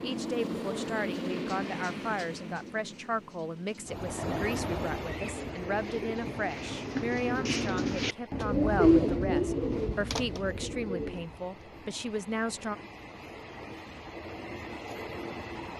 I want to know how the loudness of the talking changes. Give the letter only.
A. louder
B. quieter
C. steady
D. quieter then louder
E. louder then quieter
C.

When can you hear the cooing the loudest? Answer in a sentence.
The loudest moment of the cooing is at 9 seconds.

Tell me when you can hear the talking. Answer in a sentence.
The talking can be heard from 0.0 to 12.8 s.